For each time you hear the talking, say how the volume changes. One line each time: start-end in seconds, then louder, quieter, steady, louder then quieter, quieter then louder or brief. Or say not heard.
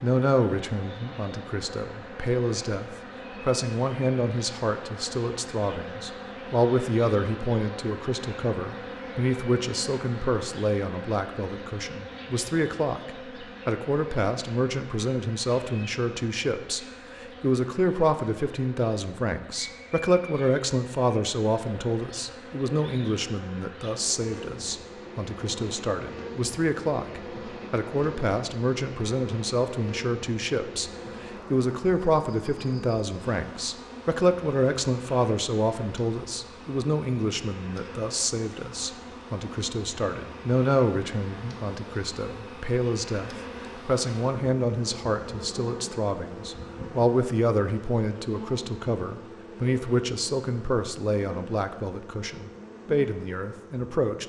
0.0-54.2 steady.